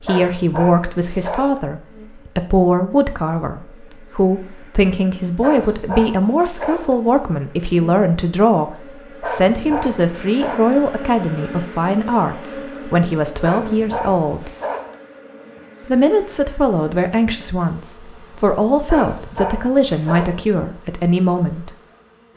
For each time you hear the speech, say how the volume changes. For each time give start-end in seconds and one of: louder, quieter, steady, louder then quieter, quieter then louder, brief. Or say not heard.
0.0-14.5 steady
15.8-21.7 quieter then louder.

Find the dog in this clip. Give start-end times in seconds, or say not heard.
0.1-1.6, 5.4-7.0, 9.2-10.8, 13.4-14.9, 18.9-20.4.